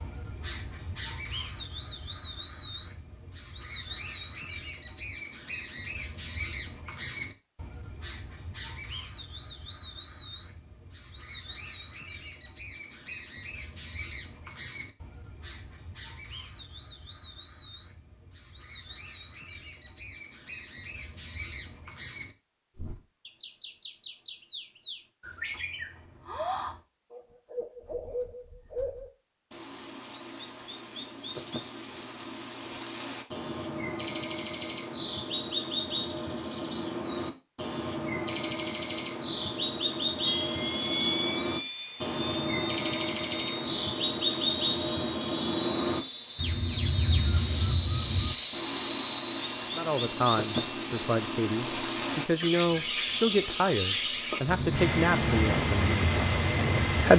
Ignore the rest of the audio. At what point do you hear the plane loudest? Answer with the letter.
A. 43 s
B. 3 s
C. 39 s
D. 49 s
D.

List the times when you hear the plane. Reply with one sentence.
The plane can be heard from 40.2 to 57.1 s.